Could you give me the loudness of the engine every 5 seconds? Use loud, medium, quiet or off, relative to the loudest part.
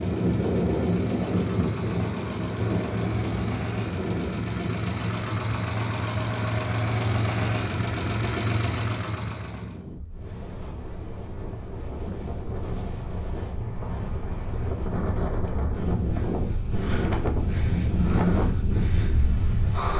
medium, loud, off, off.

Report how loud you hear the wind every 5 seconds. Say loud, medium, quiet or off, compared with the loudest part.
loud, medium, medium, loud.